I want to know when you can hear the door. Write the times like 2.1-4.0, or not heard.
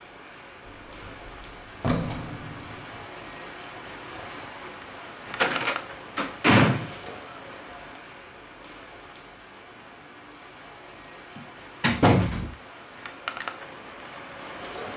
0.7-3.0, 5.3-7.1, 11.3-12.6.